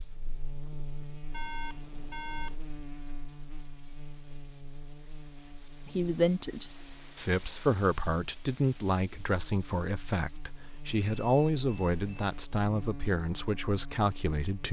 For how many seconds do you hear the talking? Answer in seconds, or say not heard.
9 s.